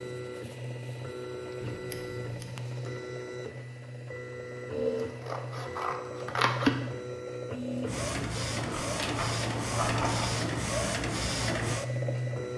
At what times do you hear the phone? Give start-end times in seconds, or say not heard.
not heard.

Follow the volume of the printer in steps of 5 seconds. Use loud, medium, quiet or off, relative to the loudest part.
medium, loud, loud.